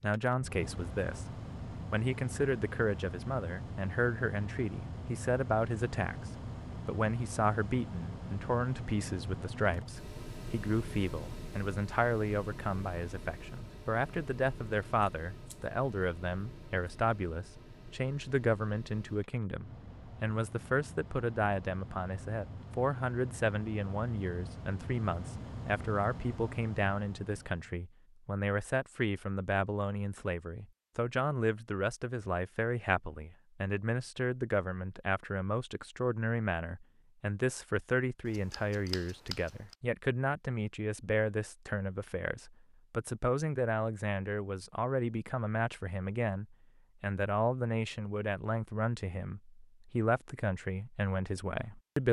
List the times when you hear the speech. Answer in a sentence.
The speech can be heard from 0.0 to 52.0 s.